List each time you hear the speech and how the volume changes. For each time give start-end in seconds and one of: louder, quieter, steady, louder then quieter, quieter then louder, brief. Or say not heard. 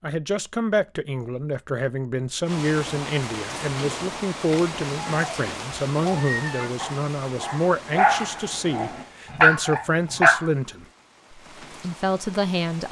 0.0-12.8 steady.